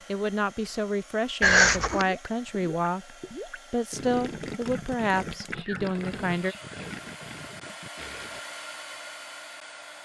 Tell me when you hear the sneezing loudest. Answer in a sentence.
The volume of the sneezing peaks at 2 seconds.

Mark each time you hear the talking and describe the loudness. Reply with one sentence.
The talking can be heard from 0.1 to 6.5 s, at a steady volume.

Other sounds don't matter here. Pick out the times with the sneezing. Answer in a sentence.
The sneezing can be heard from 1.4 to 2.0 s and from 5.5 to 6.8 s.